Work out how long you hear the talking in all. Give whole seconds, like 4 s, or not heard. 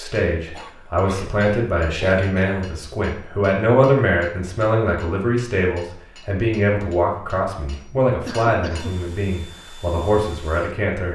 11 s.